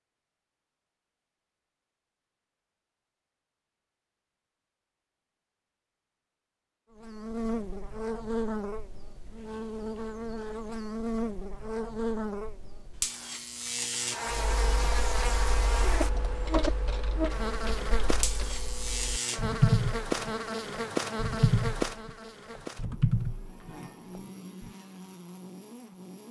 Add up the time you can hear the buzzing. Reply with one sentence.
The buzzing can be heard for 19 seconds in total.